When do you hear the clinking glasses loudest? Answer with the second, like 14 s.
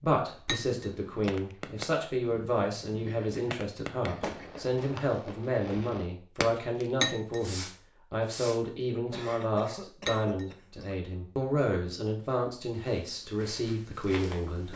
7 s.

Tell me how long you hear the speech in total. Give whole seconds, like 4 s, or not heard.
15 s.